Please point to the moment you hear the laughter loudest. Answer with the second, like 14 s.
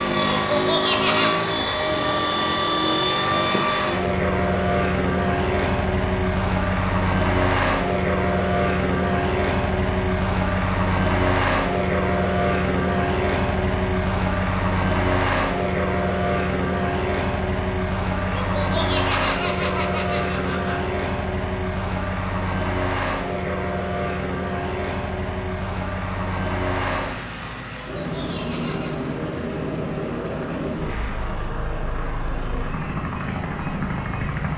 1 s.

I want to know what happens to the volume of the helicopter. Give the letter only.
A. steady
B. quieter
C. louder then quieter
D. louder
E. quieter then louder
B.